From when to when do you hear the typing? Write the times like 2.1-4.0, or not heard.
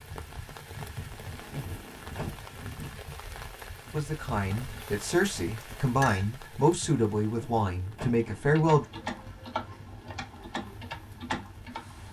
8.1-12.0.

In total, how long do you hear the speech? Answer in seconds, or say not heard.
5 s.